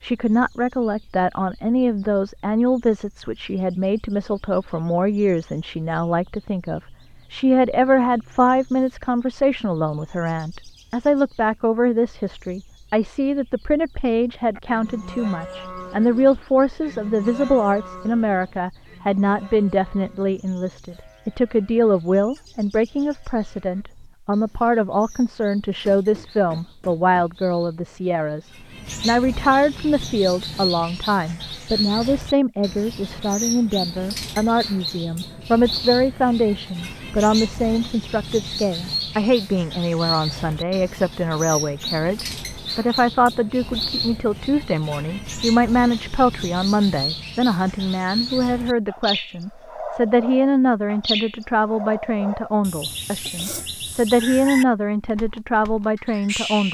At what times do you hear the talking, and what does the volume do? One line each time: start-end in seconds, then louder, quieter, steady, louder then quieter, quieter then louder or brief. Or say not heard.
0.0-56.6 steady.